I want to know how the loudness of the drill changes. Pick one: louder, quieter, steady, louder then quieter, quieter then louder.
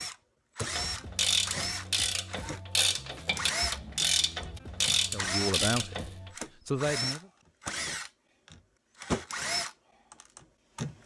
steady.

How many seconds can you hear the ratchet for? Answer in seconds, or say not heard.
6 s.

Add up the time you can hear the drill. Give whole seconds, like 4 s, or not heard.
11 s.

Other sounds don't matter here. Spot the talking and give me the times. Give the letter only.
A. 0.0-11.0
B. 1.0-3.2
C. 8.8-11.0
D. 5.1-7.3
D.